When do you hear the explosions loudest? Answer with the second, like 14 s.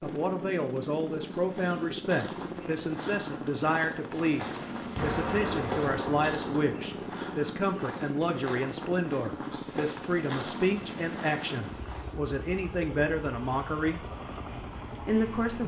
5 s.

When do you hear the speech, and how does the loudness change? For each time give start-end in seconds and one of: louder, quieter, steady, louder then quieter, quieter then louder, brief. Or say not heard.
0.0-14.0 steady
15.0-15.6 brief.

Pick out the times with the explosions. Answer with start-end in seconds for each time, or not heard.
5.0-7.1.